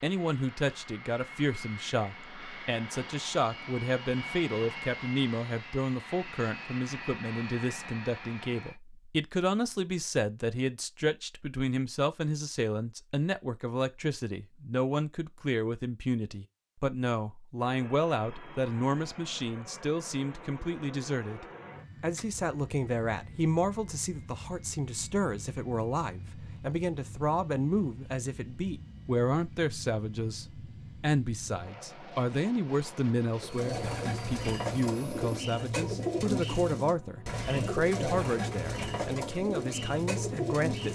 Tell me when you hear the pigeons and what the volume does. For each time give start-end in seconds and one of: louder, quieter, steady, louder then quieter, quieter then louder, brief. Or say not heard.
33.4-40.9 steady.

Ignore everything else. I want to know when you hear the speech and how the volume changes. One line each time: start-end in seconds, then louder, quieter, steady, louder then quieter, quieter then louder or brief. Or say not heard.
0.0-40.9 steady.